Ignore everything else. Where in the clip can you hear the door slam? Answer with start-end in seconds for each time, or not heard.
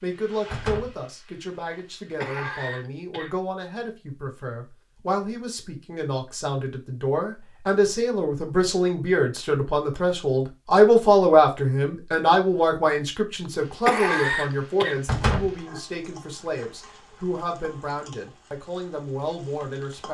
0.5-1.0, 15.1-15.6.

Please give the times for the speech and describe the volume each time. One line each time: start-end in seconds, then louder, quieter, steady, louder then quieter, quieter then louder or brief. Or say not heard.
0.0-20.0 louder then quieter.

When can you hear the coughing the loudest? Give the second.
14 s.